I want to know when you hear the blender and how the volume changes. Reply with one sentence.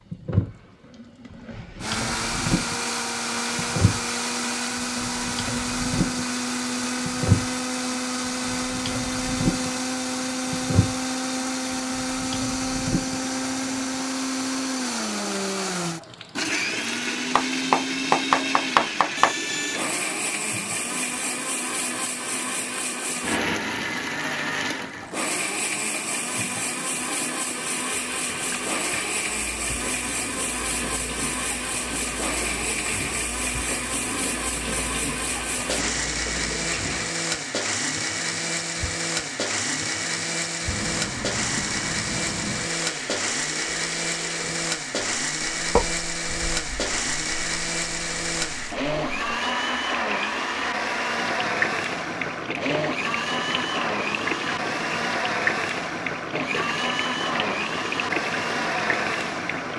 The blender can be heard from 1.8 to 59.7 s, at a steady volume.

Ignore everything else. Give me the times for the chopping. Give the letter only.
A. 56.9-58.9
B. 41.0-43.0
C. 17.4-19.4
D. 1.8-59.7
C.